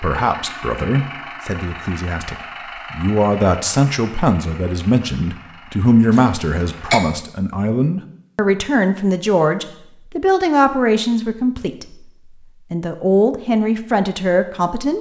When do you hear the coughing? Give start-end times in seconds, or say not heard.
6.1-7.0.